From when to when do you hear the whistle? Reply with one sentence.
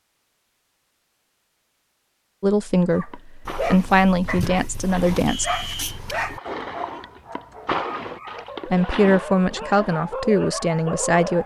You can hear the whistle from 5.2 to 6.0 s.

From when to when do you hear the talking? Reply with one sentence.
The talking can be heard from 2.4 to 5.5 s and from 8.7 to 11.4 s.